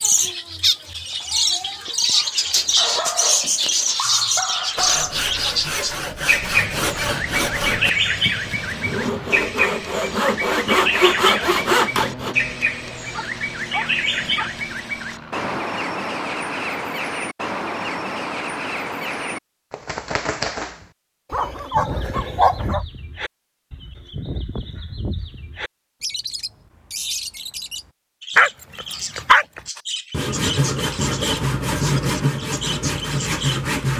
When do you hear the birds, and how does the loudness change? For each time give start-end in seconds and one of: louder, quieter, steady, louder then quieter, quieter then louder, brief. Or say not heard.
0.0-33.9 quieter.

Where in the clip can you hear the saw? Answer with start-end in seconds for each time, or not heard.
4.8-12.3, 29.8-33.9.